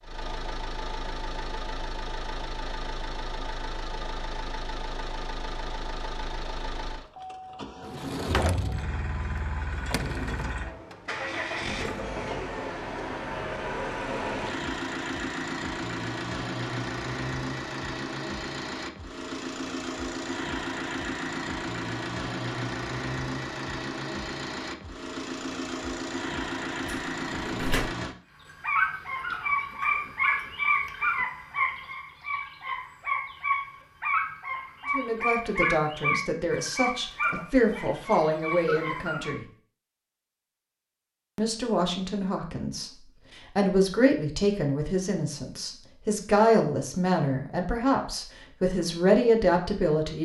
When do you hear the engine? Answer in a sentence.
The engine can be heard from 0.0 to 28.1 s.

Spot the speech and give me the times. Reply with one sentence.
The speech can be heard from 34.9 to 39.5 s and from 41.4 to 50.2 s.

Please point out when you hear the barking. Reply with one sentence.
The barking can be heard from 28.4 to 39.4 s.